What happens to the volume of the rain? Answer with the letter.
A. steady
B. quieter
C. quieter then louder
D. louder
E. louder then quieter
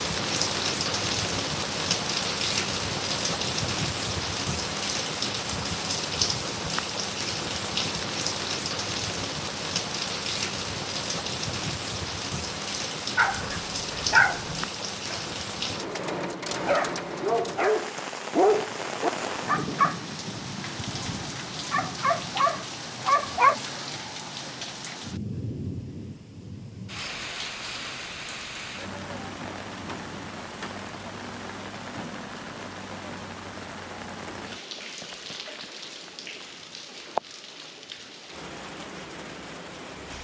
B.